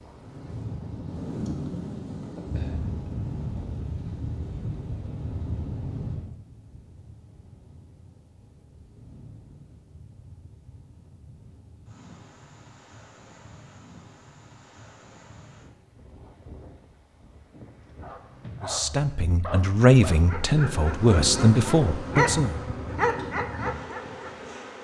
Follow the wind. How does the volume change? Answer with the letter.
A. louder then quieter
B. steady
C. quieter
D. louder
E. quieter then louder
C.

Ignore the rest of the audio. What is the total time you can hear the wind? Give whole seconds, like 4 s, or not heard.
19 s.